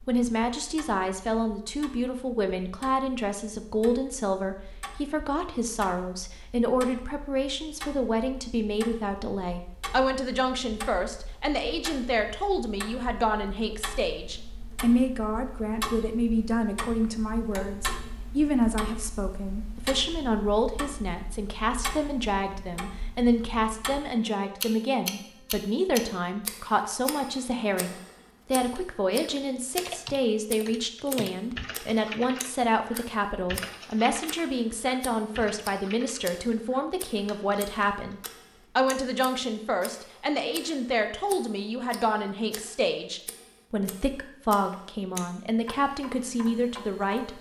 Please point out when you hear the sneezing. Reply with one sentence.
You can't hear the sneezing here.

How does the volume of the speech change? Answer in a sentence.
The loudness of the speech stays about the same.